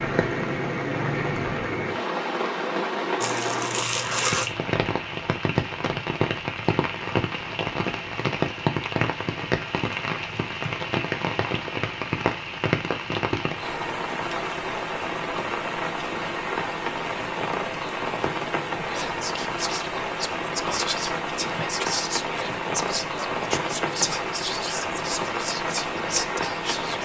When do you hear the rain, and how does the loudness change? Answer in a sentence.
The rain can be heard from 0.0 to 27.0 s, at a steady volume.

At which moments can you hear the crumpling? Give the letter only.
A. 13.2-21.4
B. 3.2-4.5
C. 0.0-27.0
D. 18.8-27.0
B.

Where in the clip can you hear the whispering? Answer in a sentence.
The whispering can be heard from 18.8 to 27.0 s.